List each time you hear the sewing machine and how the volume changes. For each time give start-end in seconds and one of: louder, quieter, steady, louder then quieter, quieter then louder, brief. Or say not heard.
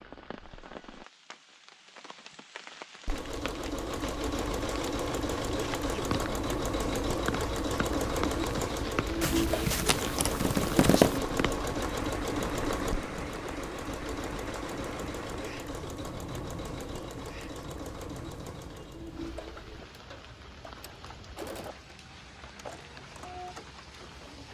3.0-24.4 quieter.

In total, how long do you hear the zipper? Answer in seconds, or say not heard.
2 s.